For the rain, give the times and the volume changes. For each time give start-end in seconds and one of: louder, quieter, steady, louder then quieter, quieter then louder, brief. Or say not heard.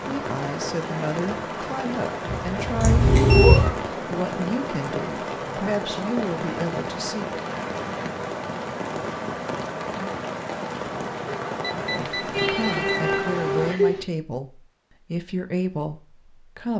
0.0-13.8 steady.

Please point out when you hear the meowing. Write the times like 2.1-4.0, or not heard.
2.2-3.7, 12.3-14.1.